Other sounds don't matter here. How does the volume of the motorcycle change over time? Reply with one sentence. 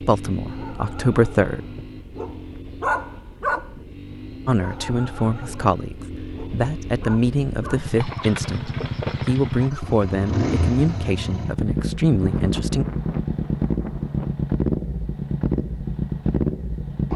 The volume of the motorcycle goes up.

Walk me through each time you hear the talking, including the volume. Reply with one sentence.
You can hear the talking briefly from 0.0 to 1.6 s; and from 4.5 to 12.8 s, at a steady volume.